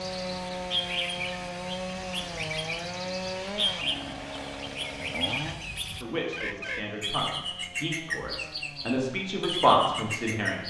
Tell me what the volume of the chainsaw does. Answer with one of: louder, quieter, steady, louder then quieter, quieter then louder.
quieter.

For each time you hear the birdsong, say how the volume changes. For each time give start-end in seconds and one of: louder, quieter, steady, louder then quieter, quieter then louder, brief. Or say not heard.
0.0-10.6 steady.